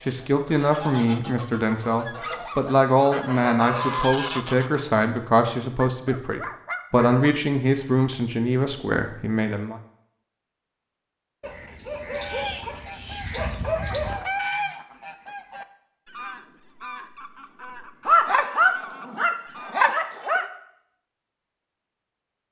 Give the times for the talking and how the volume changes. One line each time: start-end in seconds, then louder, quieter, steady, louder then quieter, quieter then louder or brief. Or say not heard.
0.0-9.8 steady.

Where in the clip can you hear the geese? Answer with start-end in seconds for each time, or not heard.
0.0-4.8, 12.1-19.9.